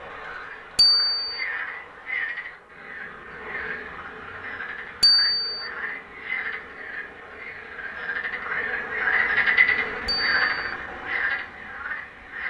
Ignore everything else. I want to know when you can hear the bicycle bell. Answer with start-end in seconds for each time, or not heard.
0.8-1.4, 5.0-5.7, 10.1-10.8.